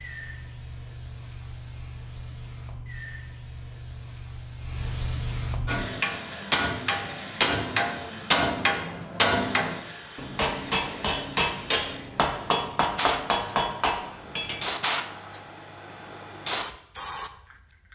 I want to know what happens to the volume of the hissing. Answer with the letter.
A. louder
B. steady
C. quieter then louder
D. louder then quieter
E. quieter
A.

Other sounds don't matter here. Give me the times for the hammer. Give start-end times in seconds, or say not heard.
5.7-14.8.